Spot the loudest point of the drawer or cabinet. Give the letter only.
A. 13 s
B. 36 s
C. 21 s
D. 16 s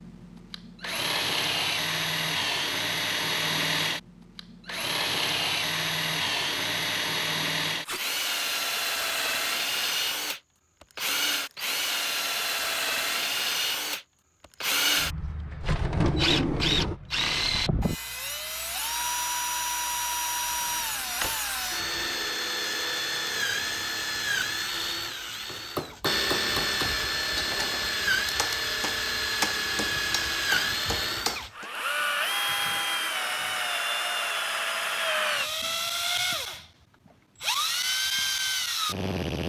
D.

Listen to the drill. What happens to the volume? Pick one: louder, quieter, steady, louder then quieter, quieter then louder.
steady.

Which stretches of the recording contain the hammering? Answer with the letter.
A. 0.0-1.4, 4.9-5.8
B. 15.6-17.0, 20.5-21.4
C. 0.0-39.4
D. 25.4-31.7
D.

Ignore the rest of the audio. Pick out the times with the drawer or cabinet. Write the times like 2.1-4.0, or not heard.
15.6-17.0, 20.5-21.4.